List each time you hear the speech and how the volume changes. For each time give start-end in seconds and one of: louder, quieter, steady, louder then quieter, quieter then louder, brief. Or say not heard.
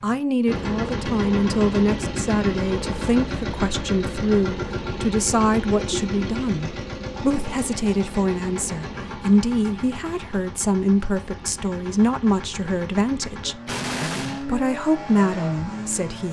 0.0-16.2 steady.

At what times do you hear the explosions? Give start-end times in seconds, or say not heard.
13.7-14.4.